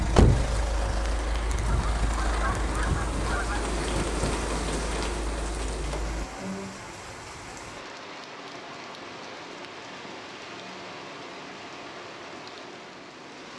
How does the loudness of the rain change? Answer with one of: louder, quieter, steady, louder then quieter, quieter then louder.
louder then quieter.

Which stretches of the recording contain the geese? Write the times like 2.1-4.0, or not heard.
1.6-3.6.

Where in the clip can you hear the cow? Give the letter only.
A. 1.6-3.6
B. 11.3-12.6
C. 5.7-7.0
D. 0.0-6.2
C.